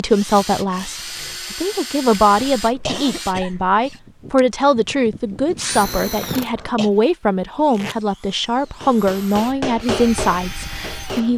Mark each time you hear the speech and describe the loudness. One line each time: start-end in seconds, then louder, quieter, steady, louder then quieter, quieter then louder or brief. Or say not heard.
0.0-11.3 steady.